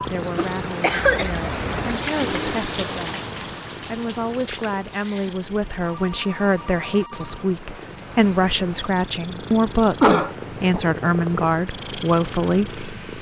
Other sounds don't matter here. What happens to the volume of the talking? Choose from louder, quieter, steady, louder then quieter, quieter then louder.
louder.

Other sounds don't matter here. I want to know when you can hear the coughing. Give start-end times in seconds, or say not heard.
0.3-1.4, 4.5-5.0, 10.0-10.8.